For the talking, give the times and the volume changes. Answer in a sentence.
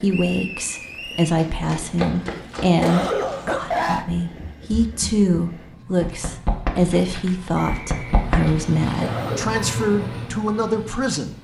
You can hear the talking from 0.0 to 11.3 s, at a steady volume.